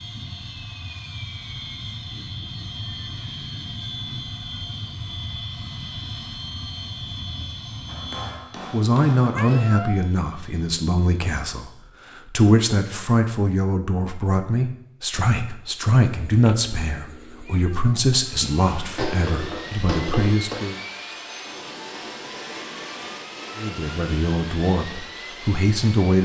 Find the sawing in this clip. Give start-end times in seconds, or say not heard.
not heard.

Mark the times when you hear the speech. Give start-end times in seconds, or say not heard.
8.7-20.8, 23.6-26.2.